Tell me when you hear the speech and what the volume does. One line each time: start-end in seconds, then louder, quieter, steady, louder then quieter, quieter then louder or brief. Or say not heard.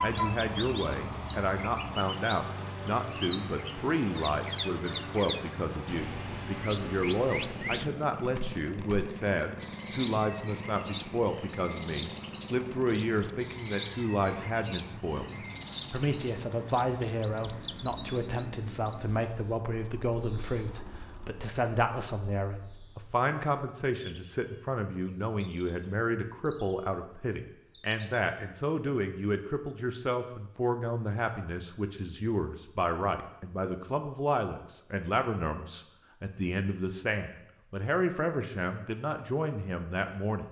0.0-15.2 steady
15.9-40.4 steady.